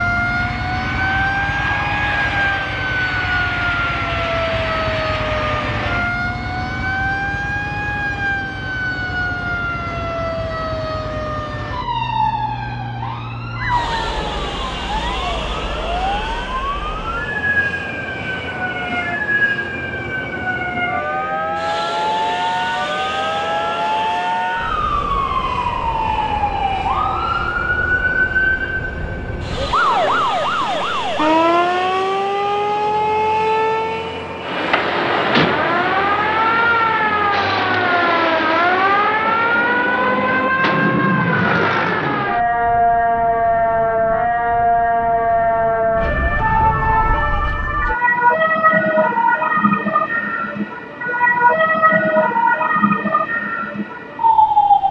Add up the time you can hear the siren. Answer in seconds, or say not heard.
55 s.